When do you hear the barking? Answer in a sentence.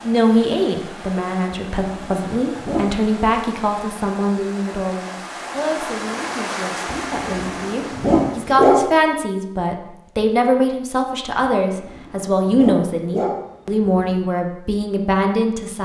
You can hear the barking from 1.5 to 3.2 s, from 6.8 to 8.9 s and from 11.5 to 14.2 s.